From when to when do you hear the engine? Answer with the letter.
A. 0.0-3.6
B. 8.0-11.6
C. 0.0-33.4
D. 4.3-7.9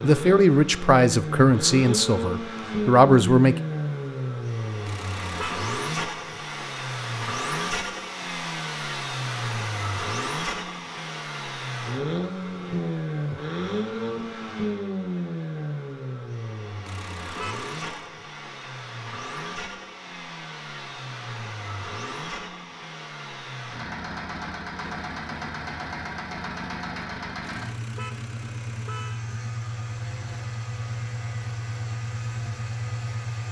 C.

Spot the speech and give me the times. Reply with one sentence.
The speech can be heard from 0.0 to 3.6 s.